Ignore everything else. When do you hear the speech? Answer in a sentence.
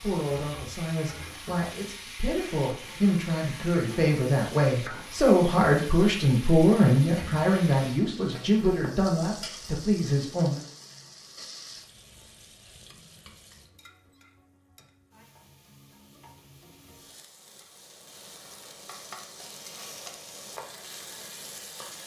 The speech can be heard from 0.0 to 10.7 s.